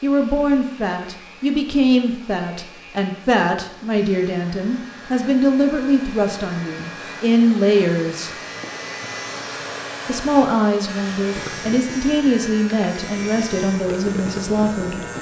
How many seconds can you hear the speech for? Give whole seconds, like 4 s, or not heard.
13 s.